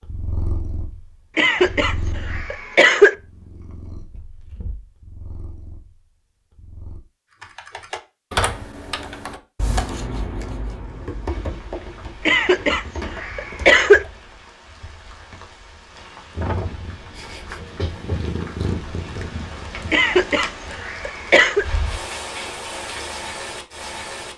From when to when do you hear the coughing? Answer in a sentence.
You can hear the coughing from 1.4 to 3.1 s, from 12.2 to 14.1 s and from 19.9 to 21.6 s.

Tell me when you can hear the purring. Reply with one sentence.
You can hear the purring from 0.0 to 7.0 s and from 16.3 to 19.9 s.